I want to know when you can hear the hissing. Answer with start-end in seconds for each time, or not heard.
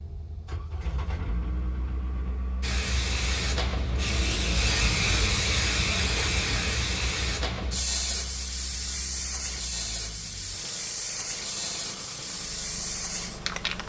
2.6-13.8.